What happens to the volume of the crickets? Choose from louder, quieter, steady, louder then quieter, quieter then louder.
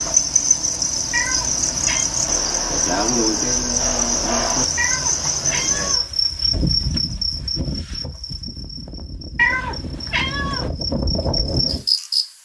quieter then louder.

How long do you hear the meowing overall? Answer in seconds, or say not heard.
4 s.